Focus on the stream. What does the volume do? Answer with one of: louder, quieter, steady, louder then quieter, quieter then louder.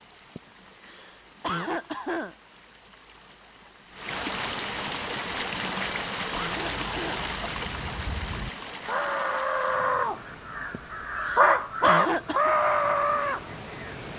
louder then quieter.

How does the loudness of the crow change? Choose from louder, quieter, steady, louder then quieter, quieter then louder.
louder.